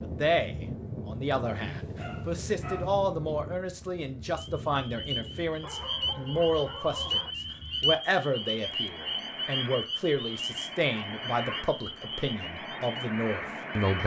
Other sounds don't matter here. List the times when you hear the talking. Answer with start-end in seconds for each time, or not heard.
0.0-14.0.